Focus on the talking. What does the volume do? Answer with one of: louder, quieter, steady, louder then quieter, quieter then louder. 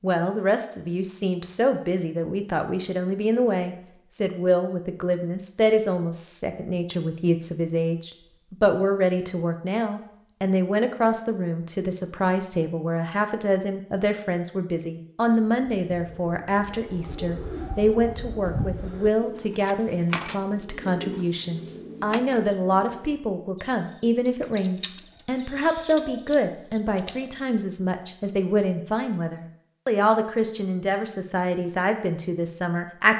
steady.